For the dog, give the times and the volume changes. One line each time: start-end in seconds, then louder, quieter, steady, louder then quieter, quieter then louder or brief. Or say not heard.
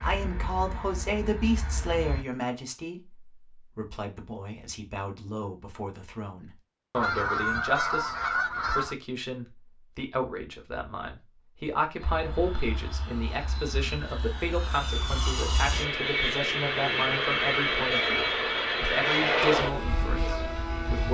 not heard.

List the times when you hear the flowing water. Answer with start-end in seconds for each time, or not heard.
not heard.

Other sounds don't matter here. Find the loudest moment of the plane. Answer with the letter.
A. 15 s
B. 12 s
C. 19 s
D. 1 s
C.